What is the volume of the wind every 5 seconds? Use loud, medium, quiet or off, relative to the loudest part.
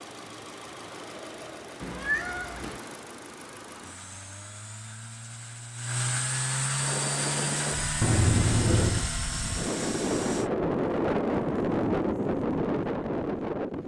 off, medium, loud.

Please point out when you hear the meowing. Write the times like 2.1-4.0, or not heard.
1.8-2.8, 8.0-9.1.